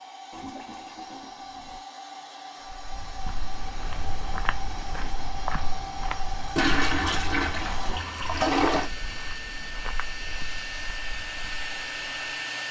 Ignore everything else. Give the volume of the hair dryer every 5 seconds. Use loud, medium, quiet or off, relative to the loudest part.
medium, loud, loud.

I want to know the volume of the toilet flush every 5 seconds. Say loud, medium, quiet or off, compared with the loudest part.
quiet, loud, off.